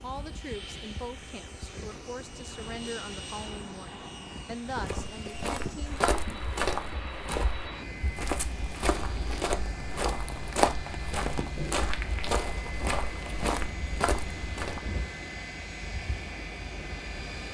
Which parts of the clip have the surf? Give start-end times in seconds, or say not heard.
0.0-17.4.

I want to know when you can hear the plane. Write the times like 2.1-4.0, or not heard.
0.0-17.4.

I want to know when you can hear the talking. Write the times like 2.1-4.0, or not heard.
0.0-6.0.